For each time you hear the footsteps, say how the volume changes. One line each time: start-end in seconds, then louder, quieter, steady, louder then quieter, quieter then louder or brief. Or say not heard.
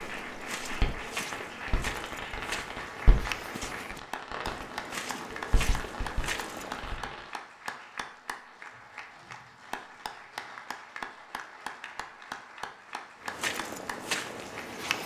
0.0-7.0 steady
13.2-15.0 brief.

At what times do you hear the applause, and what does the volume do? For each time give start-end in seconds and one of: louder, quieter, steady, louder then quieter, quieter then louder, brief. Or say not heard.
0.0-14.8 steady.